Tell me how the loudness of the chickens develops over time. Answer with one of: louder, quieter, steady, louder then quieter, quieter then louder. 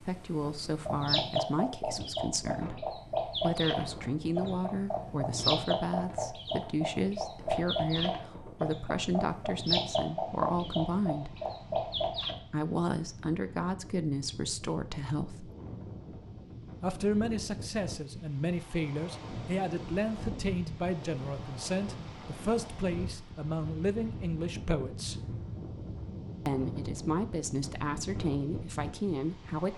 steady.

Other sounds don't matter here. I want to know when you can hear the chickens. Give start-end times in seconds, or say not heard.
0.8-12.3.